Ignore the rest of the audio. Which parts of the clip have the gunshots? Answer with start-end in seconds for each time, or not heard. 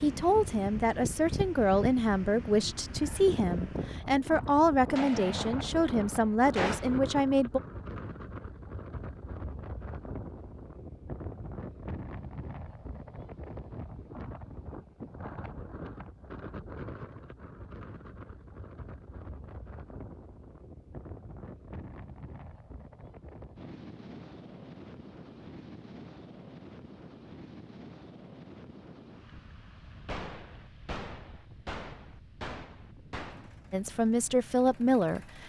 5.0-7.0, 30.1-33.5.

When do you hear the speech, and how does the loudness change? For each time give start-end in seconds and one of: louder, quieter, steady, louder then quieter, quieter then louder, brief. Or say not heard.
0.0-7.6 steady
33.7-35.4 brief.